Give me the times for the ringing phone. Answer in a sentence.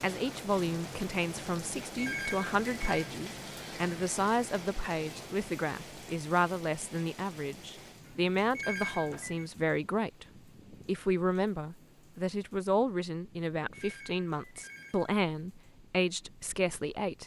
You can hear the ringing phone from 1.9 to 3.1 s, from 8.5 to 9.4 s and from 13.7 to 15.2 s.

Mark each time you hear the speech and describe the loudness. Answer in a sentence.
The speech can be heard from 0.0 to 10.2 s, at a steady volume; and from 10.8 to 17.2 s, at a steady volume.